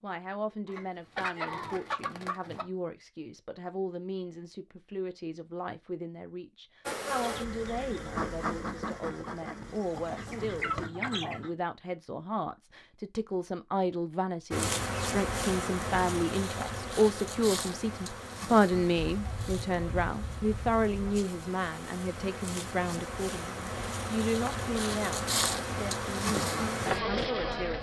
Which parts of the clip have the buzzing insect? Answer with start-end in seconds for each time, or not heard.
6.8-10.9, 14.5-27.7.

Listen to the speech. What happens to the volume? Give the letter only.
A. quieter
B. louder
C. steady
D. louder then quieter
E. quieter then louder
D.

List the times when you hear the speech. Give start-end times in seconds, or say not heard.
0.0-27.7.